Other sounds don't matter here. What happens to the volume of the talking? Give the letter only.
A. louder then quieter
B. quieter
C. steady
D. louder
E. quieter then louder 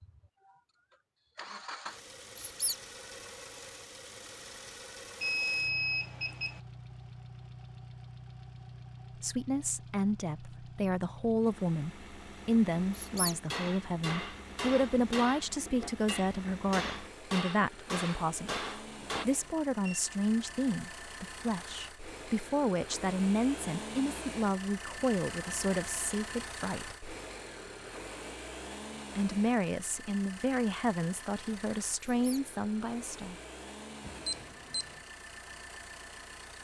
C.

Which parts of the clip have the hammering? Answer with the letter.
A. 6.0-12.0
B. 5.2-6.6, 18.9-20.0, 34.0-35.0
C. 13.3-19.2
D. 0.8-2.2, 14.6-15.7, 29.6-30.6
C.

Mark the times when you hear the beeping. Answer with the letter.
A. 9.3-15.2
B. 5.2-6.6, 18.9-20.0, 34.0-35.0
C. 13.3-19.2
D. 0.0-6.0
B.